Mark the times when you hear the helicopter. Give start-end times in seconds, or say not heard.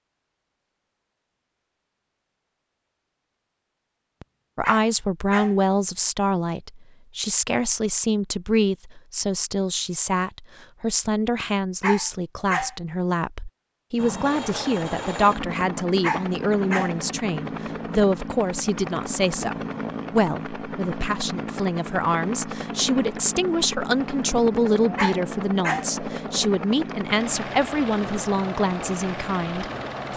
13.9-30.1.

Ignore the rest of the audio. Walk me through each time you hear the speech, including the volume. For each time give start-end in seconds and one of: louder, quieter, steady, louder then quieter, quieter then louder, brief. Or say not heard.
4.5-30.1 steady.